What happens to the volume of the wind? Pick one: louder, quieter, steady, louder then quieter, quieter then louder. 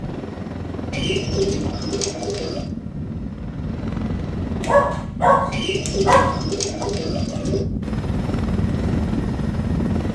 louder.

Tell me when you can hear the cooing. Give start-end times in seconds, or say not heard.
0.9-2.7, 5.5-7.7.